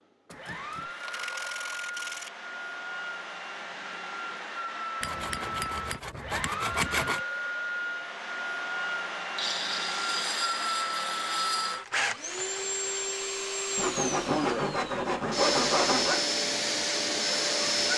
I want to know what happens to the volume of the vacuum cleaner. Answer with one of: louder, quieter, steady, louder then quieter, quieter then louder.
louder.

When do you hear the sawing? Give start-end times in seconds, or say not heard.
0.3-2.3, 5.0-7.2, 9.3-11.8, 13.8-16.2.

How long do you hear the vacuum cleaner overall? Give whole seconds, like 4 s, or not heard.
18 s.